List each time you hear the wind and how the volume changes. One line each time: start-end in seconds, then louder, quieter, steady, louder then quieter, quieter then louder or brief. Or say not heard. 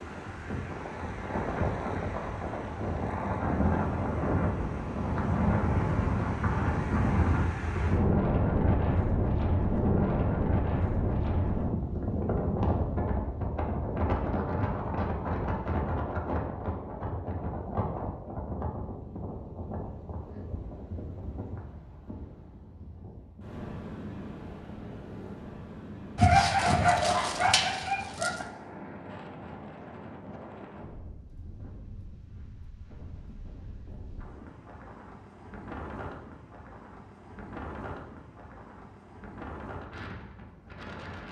0.0-41.2 quieter.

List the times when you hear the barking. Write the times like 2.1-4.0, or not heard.
26.1-28.4.